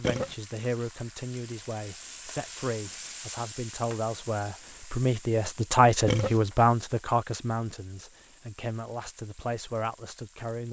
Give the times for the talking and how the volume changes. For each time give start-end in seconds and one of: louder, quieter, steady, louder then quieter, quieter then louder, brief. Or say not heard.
0.0-10.6 louder then quieter.